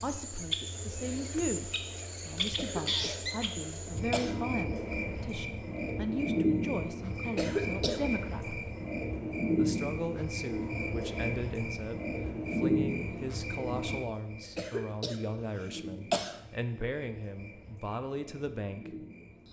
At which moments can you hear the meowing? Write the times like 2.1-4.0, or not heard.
not heard.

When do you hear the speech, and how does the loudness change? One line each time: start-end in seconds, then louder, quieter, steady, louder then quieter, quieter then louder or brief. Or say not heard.
0.0-8.6 steady
9.6-19.1 steady.